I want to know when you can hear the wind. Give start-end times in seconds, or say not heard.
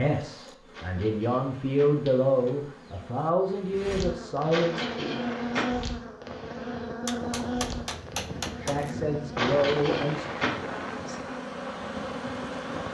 5.0-12.9.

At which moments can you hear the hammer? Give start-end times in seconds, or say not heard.
7.0-8.9.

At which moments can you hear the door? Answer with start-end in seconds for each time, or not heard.
0.7-2.5, 4.5-5.8, 9.3-10.7.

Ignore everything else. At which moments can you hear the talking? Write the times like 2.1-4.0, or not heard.
0.0-4.8, 8.7-10.2.